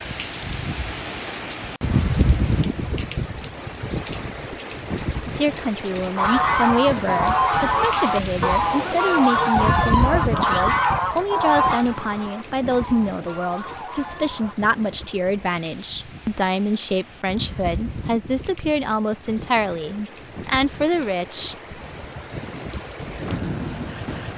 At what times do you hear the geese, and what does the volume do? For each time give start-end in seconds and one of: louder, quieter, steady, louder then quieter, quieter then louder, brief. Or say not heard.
6.2-14.6 quieter.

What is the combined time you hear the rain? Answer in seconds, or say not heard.
24 s.